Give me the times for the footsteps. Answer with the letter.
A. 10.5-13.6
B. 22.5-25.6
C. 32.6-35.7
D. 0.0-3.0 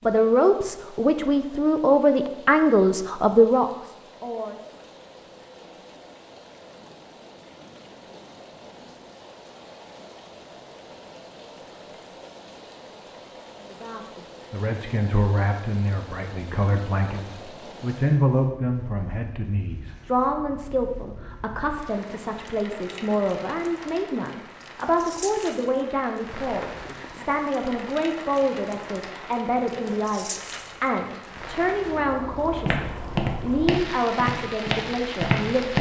C.